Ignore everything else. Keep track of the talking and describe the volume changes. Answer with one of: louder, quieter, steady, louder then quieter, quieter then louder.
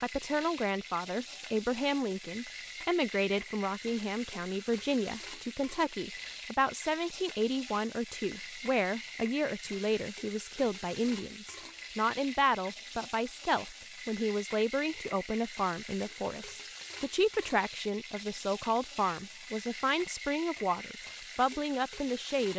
steady.